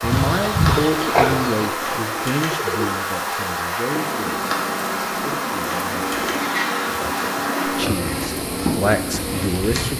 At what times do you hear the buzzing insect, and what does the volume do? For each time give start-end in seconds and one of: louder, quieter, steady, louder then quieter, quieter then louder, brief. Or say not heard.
0.0-9.9 steady.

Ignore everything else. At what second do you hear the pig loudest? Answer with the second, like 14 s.
1 s.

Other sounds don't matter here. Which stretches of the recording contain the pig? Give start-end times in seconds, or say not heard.
0.0-1.7, 6.3-8.2.